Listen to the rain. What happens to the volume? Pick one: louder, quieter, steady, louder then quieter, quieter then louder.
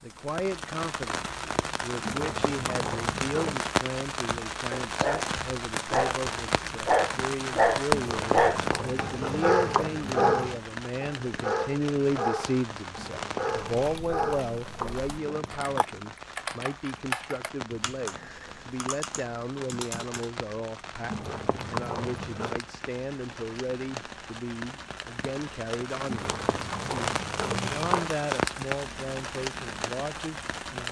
quieter then louder.